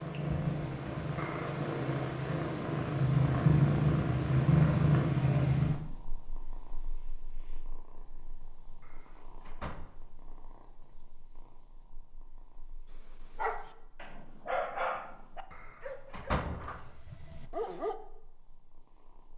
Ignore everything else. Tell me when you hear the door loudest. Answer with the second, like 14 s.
16 s.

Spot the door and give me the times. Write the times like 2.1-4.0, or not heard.
1.1-1.6, 8.8-9.9, 15.5-16.9.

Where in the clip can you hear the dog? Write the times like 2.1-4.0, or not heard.
12.9-17.9.